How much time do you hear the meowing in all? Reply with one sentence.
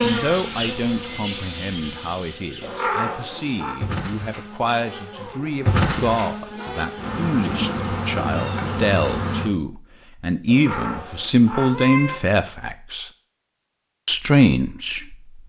The meowing can be heard for 3 seconds in total.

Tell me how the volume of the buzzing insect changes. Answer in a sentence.
The volume of the buzzing insect goes down, then up.